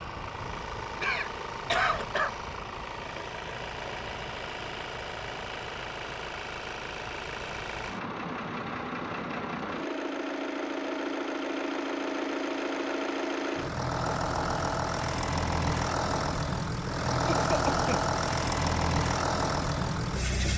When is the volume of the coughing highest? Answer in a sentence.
The loudest moment of the coughing is at 2 seconds.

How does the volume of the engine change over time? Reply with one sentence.
The loudness of the engine goes up.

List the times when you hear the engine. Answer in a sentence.
You can hear the engine from 0.0 to 20.5 s.